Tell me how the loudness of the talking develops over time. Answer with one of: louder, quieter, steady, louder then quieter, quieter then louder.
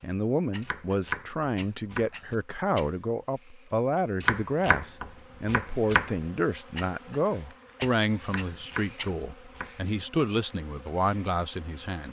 steady.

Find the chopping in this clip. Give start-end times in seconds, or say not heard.
0.6-2.4, 4.2-6.1, 8.2-9.7.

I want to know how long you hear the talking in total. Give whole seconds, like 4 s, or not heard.
12 s.